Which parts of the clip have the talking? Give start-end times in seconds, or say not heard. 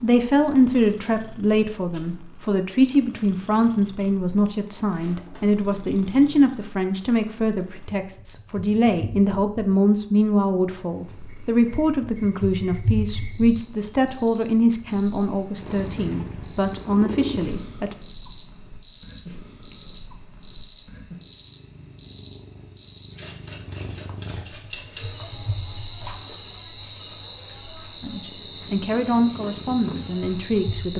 0.0-17.9, 28.0-30.9.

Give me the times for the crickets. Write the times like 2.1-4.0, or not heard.
11.2-30.9.